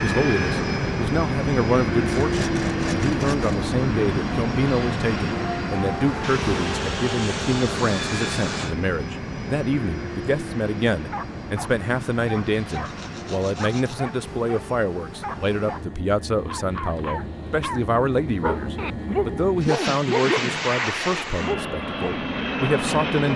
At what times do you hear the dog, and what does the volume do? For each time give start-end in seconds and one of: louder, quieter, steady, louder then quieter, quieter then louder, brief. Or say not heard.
11.1-22.3 louder.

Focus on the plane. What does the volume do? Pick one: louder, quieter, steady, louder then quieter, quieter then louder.
quieter then louder.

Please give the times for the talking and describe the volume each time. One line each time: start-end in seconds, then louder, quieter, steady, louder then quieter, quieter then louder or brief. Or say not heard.
0.0-23.3 steady.